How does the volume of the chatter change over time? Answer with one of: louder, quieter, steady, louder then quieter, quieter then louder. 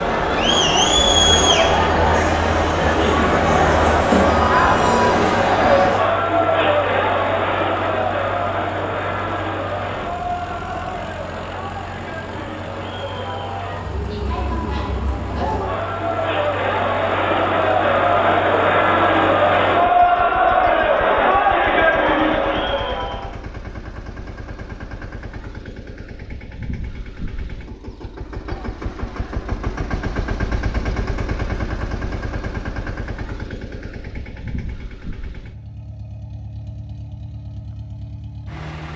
quieter then louder.